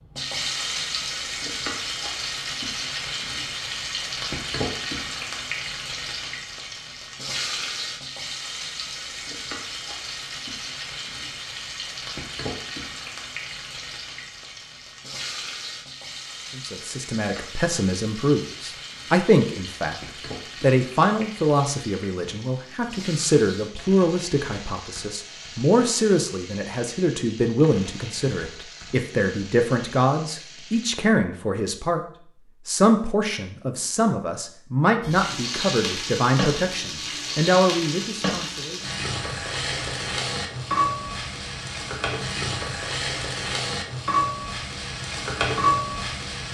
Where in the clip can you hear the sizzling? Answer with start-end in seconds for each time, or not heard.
0.0-30.9, 35.0-46.4.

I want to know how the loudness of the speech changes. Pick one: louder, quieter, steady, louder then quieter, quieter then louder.
steady.